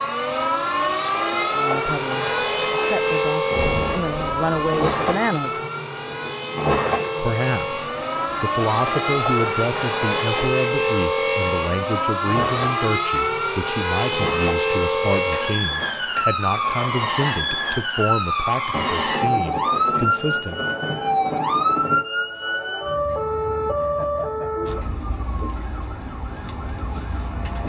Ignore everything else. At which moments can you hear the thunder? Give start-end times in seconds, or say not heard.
3.5-4.6, 18.7-22.0.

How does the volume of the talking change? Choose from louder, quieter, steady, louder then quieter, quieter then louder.
steady.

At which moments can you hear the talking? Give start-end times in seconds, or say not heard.
1.5-5.6, 7.2-20.7.